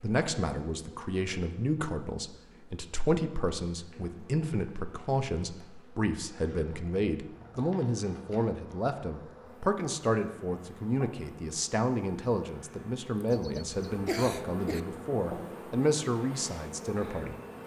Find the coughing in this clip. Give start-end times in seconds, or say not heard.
13.3-14.8.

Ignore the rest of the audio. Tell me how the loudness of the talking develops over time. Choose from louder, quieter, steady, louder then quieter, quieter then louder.
steady.